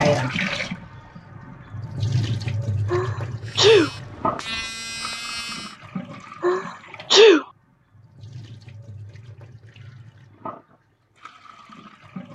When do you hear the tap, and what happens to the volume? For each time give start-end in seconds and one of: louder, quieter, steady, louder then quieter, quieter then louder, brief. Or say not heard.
0.0-12.3 quieter.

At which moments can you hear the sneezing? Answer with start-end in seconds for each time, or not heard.
2.9-3.9, 6.4-7.5.